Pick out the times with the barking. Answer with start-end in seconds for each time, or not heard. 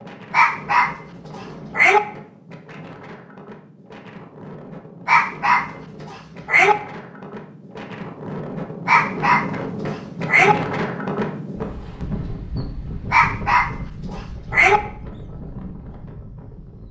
0.3-2.0, 5.0-6.8, 8.8-10.6, 13.1-14.8.